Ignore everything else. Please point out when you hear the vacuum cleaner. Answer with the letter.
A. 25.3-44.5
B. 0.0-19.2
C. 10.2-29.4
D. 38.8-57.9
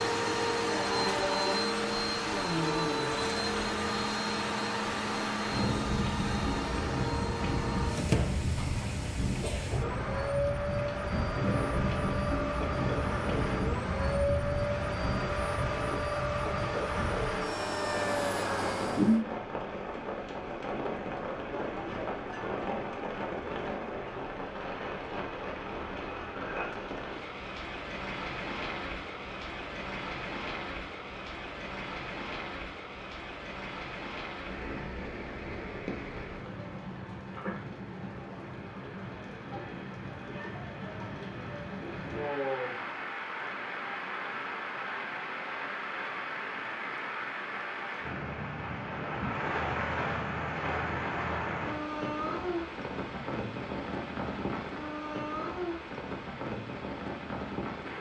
B.